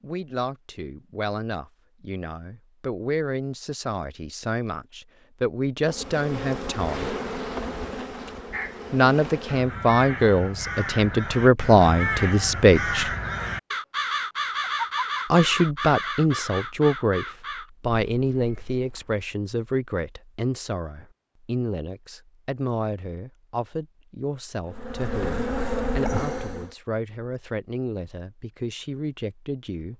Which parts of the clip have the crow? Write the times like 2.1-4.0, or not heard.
8.5-19.1.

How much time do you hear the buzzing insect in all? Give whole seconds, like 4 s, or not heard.
6 s.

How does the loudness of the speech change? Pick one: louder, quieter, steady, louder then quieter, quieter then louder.
louder then quieter.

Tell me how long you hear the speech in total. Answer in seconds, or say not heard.
26 s.